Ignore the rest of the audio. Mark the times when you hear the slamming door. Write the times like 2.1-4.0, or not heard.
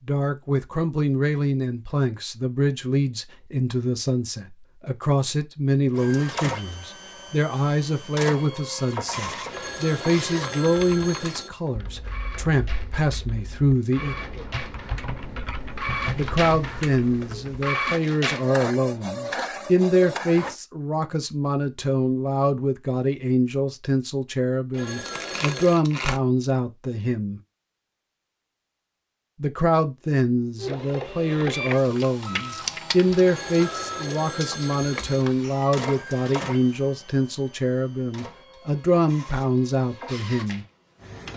not heard.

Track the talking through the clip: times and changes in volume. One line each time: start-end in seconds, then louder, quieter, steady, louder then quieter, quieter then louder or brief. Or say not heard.
0.1-14.2 steady
16.1-27.4 steady
29.4-40.6 steady.